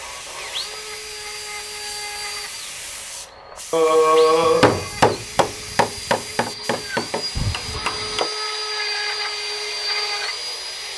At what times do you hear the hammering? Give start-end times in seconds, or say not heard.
4.4-8.3.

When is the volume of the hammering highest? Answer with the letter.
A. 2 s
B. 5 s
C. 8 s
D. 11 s
B.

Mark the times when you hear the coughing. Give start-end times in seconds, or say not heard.
3.7-4.9.